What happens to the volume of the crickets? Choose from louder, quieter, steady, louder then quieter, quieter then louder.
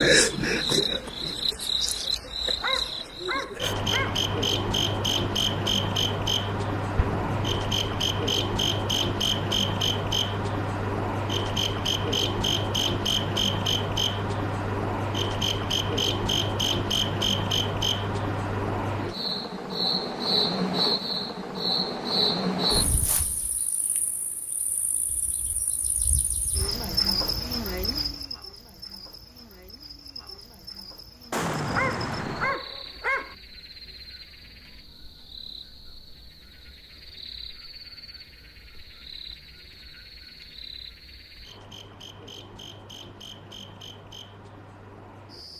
quieter.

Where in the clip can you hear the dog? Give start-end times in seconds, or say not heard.
2.5-4.2, 31.6-33.4.